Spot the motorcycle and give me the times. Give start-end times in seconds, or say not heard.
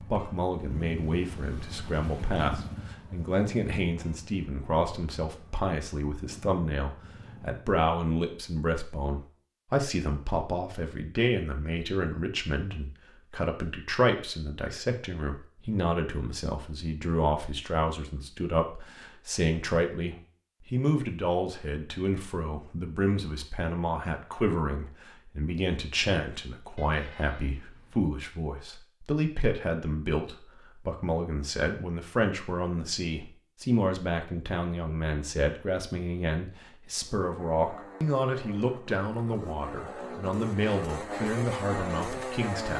0.0-7.7, 37.0-42.7.